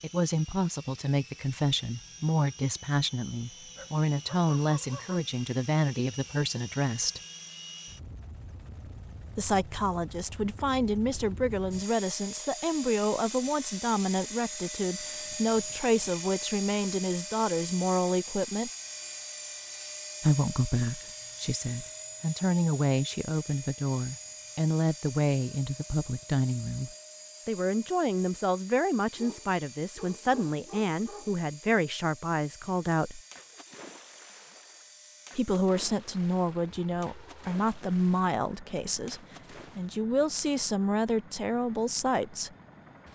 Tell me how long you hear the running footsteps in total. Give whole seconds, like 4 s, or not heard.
not heard.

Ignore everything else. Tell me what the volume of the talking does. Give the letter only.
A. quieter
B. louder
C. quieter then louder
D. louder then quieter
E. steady
E.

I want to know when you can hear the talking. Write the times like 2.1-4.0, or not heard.
0.0-7.2, 9.3-18.7, 20.2-33.2, 35.4-42.5.